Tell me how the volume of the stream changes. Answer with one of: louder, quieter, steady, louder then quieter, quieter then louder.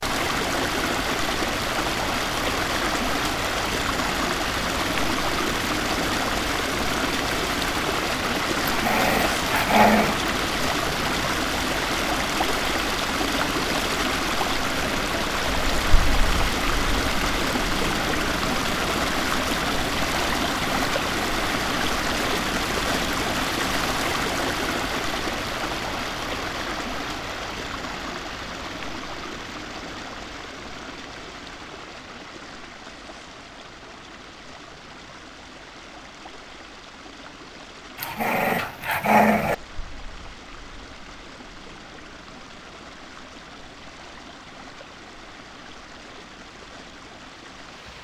quieter.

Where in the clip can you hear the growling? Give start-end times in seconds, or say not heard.
8.7-10.2, 38.0-39.5.